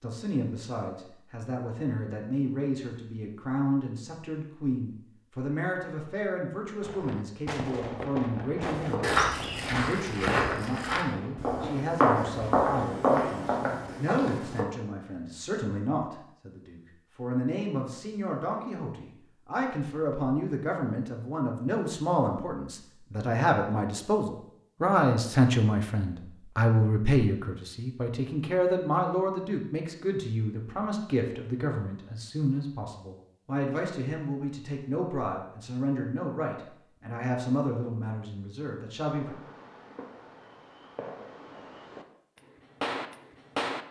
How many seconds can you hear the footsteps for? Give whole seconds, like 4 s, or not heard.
6 s.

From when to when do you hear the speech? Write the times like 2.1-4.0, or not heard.
0.0-39.4.